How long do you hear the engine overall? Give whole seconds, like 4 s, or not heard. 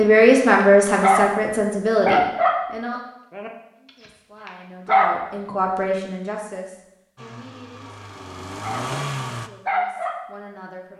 2 s.